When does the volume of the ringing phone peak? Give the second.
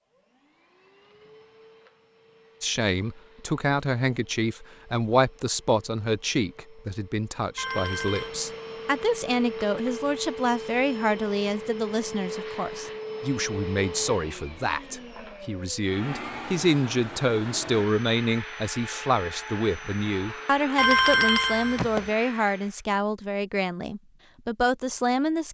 21 s.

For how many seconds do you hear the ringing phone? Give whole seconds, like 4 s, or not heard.
2 s.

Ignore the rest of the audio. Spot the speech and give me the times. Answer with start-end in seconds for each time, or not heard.
2.6-25.4.